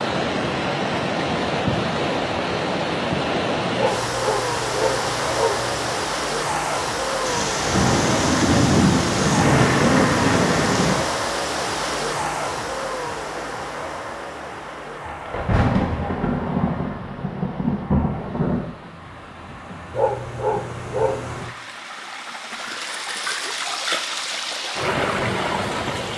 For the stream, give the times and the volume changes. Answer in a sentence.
You can hear the stream from 0.0 to 26.1 s, getting quieter then louder.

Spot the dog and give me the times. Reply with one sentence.
The dog can be heard from 3.8 to 5.8 s and from 19.9 to 21.6 s.